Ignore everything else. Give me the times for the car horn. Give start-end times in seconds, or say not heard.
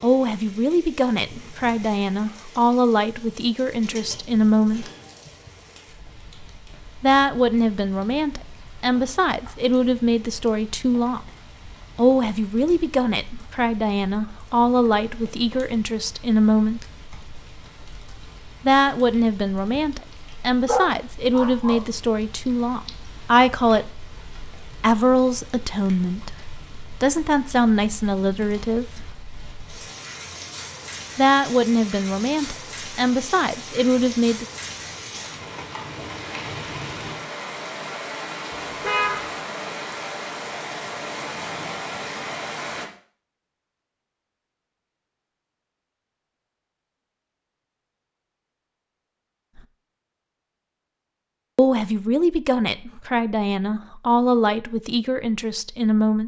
38.5-39.4.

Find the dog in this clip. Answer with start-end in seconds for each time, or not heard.
20.6-21.9.